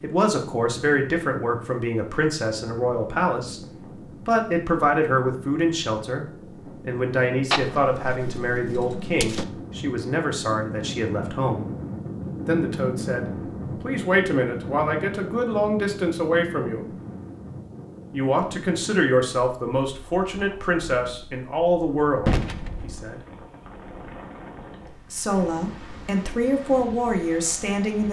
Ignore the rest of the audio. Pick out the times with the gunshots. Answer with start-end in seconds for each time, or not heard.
7.5-9.4, 22.2-23.1.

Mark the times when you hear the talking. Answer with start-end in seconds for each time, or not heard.
0.0-3.6, 4.2-11.7, 12.4-16.9, 18.1-23.2, 25.1-28.0.